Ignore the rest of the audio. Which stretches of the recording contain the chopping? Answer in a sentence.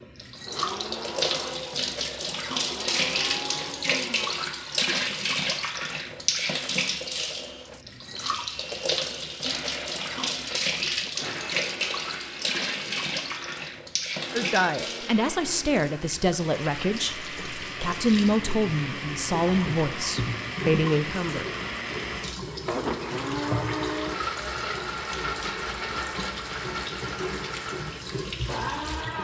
You can't hear the chopping here.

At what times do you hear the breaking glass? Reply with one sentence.
The breaking glass can't be heard in this clip.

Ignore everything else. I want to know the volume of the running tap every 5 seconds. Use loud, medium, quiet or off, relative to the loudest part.
loud, loud, loud, medium, medium, medium.